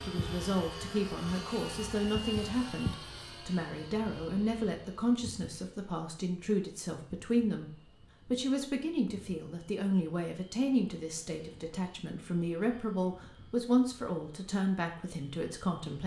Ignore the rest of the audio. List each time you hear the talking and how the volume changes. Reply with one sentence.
You can hear the talking from 0.1 to 16.0 s, at a steady volume.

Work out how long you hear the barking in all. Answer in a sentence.
The barking can't be heard in this clip.